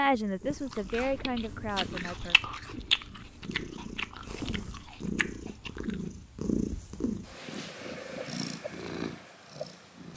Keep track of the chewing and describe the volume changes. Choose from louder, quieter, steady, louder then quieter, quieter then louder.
louder then quieter.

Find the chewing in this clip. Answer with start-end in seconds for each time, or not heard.
0.7-6.0.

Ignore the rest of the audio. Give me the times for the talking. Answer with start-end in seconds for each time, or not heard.
0.0-2.4.